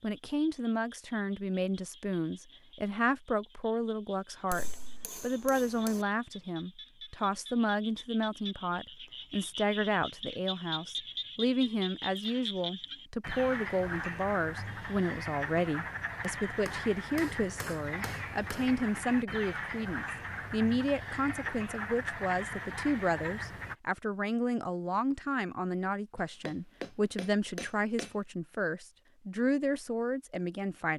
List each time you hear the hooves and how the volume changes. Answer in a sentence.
The hooves can't be heard in this clip.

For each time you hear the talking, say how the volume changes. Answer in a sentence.
The talking can be heard from 0.0 to 30.9 s, at a steady volume.